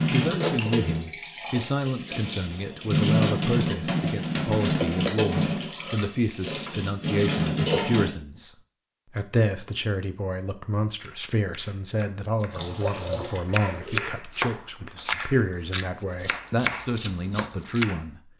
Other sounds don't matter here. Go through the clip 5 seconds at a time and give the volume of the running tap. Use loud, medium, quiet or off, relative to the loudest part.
loud, loud, medium, off.